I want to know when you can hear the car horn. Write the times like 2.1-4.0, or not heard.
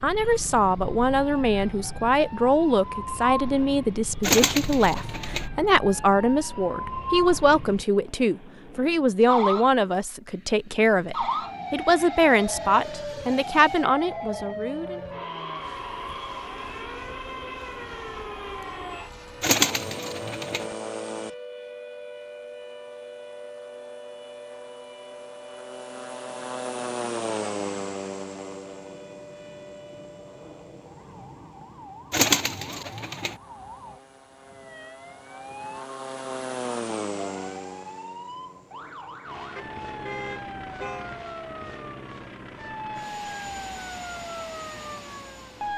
39.5-41.1.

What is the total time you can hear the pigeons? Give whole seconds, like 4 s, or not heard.
4 s.